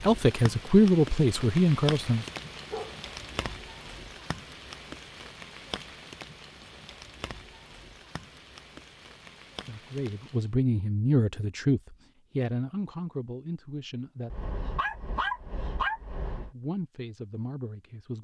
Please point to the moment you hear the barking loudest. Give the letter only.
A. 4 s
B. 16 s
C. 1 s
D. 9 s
B.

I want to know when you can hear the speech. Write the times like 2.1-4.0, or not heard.
0.0-2.2, 9.7-14.4, 16.3-18.1.